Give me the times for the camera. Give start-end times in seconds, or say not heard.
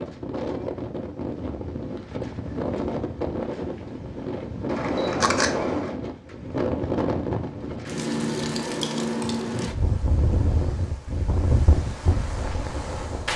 4.7-5.9.